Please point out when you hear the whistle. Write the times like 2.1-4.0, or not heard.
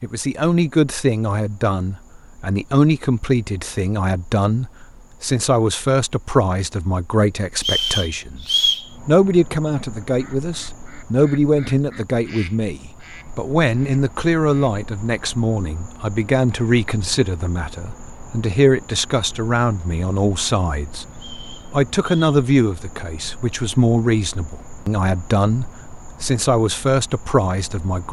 7.5-8.9, 21.1-22.4.